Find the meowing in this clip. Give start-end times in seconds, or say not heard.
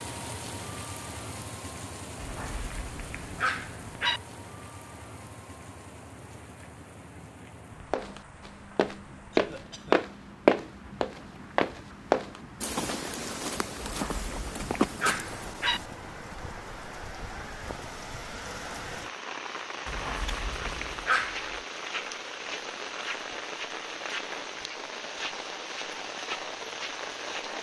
not heard.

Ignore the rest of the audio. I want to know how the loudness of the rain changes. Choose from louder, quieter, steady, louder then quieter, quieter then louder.
quieter then louder.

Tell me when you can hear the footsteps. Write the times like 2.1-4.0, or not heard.
7.9-15.9.